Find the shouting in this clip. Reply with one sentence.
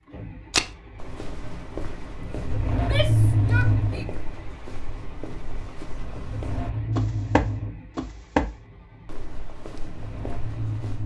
You can hear the shouting from 2.7 to 4.0 s.